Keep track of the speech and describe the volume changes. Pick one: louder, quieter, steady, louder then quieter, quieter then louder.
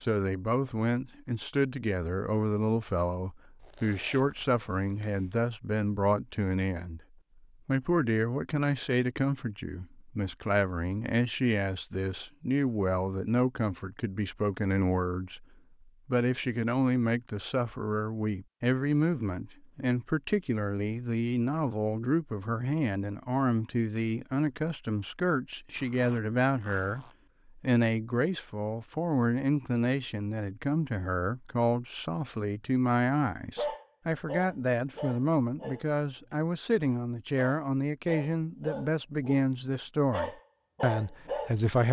steady.